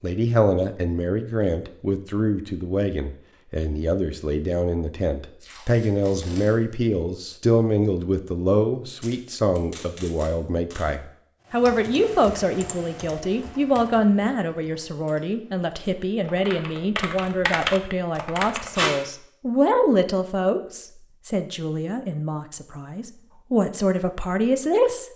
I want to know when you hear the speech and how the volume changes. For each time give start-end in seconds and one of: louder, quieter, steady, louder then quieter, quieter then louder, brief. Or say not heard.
0.0-25.1 steady.